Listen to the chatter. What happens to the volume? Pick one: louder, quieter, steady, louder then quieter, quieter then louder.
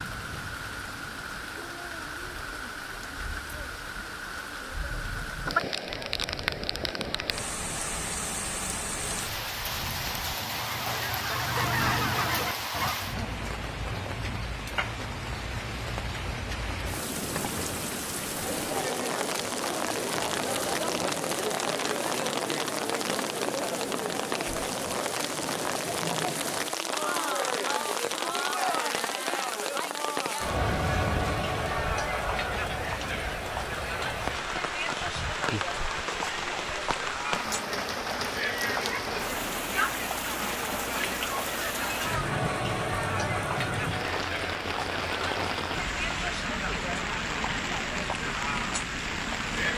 steady.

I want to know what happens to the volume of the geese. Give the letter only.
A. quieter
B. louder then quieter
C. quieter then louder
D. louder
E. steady
D.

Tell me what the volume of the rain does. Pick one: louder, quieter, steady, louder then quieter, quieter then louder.
steady.